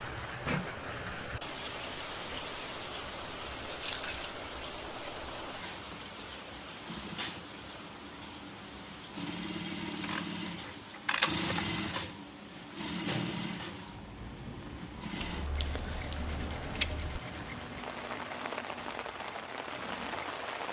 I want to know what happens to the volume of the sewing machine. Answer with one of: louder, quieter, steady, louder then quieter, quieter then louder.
louder then quieter.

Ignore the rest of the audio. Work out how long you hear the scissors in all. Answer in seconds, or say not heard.
5 s.